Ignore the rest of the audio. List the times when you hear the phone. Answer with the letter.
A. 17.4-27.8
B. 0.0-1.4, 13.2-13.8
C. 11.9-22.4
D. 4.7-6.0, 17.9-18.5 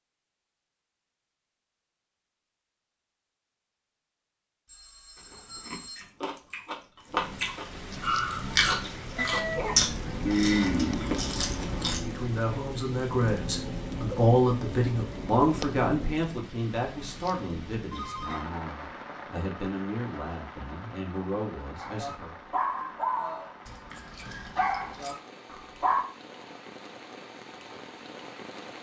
D.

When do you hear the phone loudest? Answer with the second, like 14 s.
18 s.